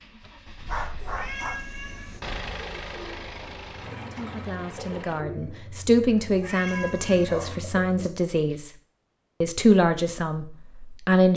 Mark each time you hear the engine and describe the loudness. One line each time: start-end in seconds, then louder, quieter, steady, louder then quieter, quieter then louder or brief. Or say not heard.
0.0-5.2 louder then quieter.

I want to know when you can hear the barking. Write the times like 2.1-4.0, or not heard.
0.6-2.2, 7.2-8.6.